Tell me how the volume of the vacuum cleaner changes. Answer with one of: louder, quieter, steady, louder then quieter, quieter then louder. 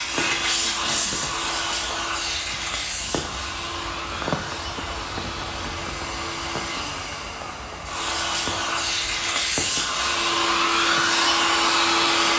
quieter then louder.